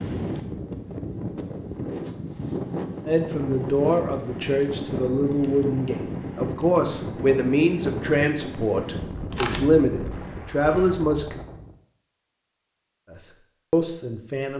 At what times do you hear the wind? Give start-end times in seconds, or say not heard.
0.0-11.8.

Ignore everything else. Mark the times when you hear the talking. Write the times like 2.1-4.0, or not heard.
3.0-11.4, 13.1-14.5.